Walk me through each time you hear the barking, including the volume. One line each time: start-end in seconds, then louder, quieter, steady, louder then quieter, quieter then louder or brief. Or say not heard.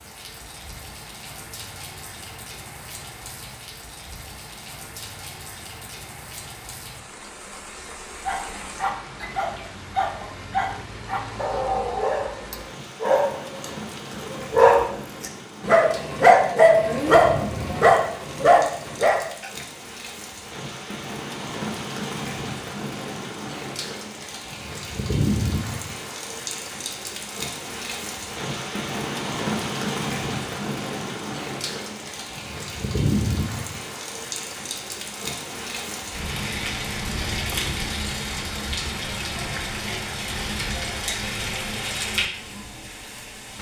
8.2-19.6 louder.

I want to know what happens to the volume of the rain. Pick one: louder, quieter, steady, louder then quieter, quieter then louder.
louder.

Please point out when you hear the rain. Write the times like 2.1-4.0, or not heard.
0.0-43.5.